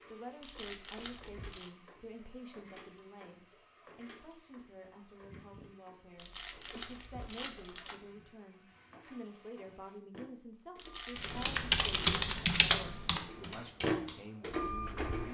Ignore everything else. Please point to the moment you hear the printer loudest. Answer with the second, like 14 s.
14 s.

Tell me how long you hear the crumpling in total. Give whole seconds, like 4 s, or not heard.
5 s.